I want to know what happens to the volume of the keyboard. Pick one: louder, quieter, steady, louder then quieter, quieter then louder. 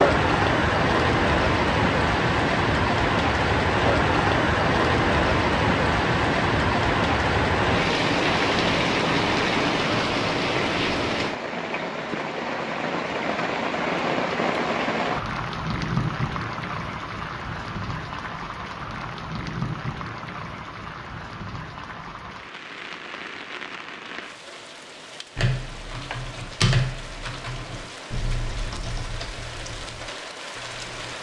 quieter.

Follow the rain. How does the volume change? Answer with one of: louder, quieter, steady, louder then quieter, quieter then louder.
quieter.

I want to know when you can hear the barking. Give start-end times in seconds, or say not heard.
not heard.